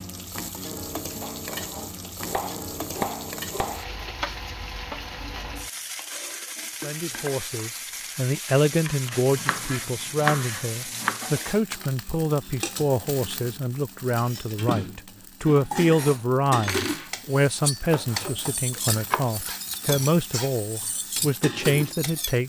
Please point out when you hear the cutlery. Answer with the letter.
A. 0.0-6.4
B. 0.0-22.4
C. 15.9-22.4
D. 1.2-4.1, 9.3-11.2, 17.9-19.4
C.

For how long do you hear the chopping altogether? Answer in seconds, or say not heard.
6 s.